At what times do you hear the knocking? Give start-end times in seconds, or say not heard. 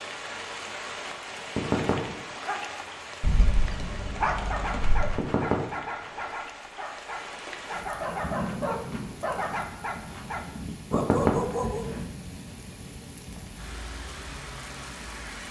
1.6-2.1, 5.2-6.2, 10.9-12.0.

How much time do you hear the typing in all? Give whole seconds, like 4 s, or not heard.
2 s.